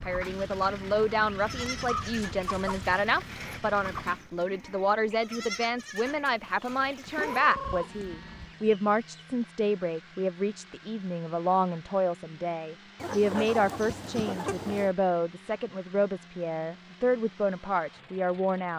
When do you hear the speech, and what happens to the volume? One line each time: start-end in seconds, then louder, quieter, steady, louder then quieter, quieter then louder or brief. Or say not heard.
0.0-18.7 steady.